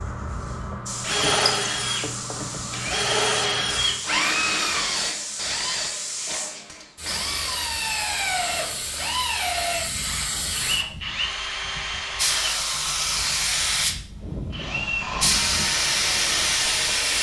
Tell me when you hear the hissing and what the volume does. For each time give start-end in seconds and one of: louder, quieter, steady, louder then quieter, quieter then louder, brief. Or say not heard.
0.0-17.1 louder.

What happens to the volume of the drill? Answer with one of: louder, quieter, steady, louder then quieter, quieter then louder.
quieter.